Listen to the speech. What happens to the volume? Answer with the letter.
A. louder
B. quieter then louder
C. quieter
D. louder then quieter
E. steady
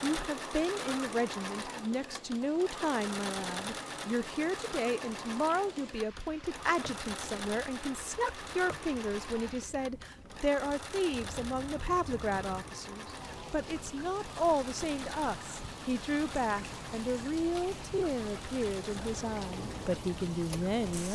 E.